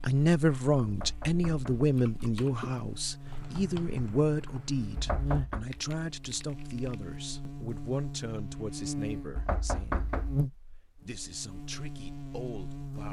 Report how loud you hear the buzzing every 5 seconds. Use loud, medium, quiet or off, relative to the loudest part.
medium, loud, loud.